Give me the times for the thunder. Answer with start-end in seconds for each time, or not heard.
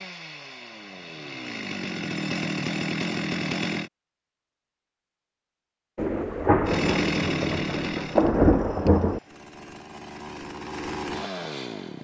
6.0-9.2.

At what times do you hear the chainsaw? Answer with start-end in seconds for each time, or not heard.
0.0-3.9, 6.7-11.9.